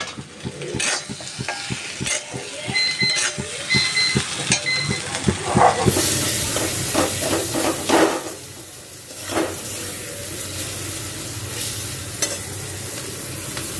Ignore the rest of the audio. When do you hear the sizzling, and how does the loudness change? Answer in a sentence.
The sizzling can be heard from 0.0 to 13.7 s, getting louder then quieter.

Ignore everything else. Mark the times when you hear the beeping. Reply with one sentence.
You can hear the beeping from 2.3 to 5.0 s.